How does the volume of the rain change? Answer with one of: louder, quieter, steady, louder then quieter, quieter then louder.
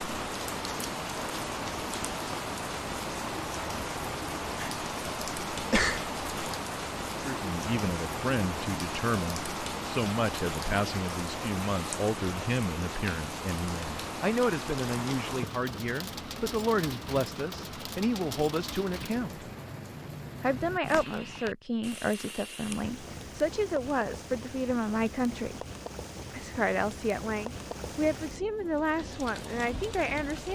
quieter.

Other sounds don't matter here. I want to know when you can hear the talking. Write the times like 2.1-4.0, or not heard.
7.2-19.4, 20.4-25.6, 26.3-30.4.